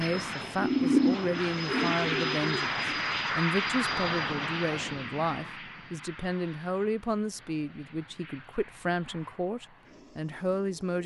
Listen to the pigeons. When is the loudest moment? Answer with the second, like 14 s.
1 s.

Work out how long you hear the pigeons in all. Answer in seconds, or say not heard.
3 s.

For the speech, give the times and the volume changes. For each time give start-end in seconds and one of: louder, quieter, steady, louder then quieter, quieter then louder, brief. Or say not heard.
0.0-11.0 steady.